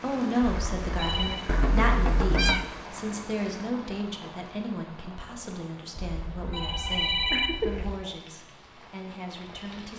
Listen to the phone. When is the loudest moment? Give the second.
7 s.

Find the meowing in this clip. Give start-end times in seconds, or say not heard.
1.4-2.7, 6.7-8.0.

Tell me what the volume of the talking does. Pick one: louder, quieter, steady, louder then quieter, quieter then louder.
quieter.